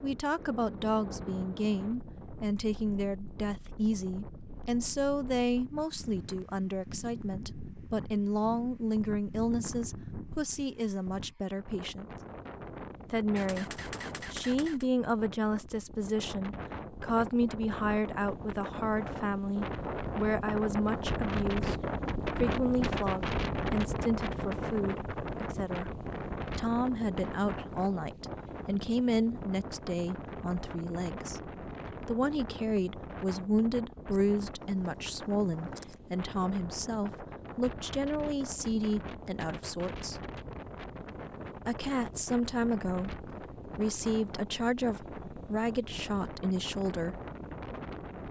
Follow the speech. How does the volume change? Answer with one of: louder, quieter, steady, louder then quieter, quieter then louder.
steady.